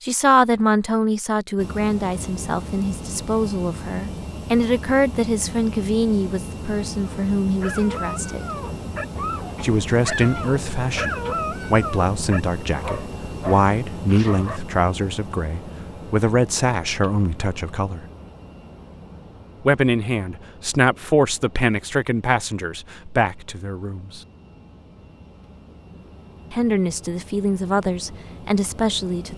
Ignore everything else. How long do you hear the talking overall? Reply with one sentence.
You can hear the talking for 24 seconds altogether.